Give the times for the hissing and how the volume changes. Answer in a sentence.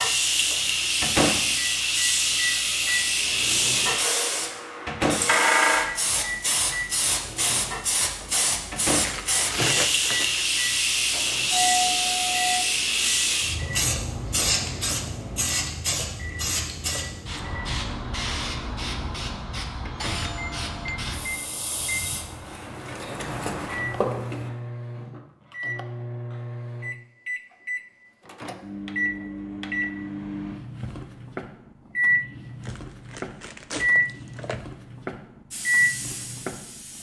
The hissing can be heard from 0.0 to 24.5 s, getting quieter; and briefly from 35.5 to 36.9 s.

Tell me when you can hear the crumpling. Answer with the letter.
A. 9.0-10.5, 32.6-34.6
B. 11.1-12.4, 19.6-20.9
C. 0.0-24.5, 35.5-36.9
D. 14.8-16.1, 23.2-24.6
A.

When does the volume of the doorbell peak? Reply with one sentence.
The loudest moment of the doorbell is at 12 seconds.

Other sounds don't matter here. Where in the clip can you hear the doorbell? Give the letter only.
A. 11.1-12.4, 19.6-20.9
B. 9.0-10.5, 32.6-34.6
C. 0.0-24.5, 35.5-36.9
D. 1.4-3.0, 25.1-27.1
A.